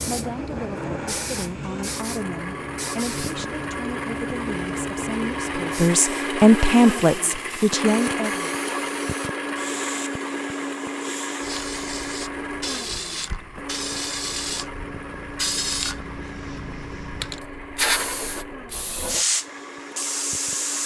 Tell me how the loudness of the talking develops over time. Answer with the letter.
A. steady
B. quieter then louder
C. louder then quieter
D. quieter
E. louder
E.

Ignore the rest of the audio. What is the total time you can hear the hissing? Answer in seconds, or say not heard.
21 s.